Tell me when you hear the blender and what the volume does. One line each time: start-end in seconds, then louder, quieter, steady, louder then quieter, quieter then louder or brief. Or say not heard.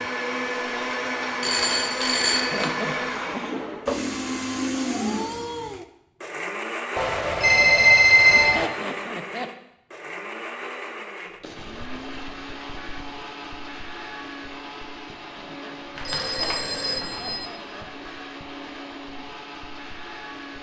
0.0-20.5 quieter.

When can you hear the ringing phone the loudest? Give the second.
8 s.